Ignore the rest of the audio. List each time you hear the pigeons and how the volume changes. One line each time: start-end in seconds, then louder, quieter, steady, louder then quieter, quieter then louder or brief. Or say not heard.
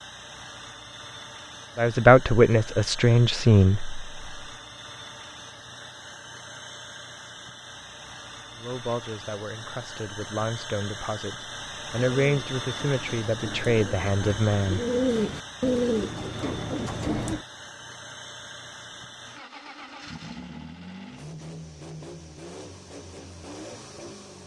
12.2-17.4 louder then quieter.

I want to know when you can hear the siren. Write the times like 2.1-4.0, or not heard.
not heard.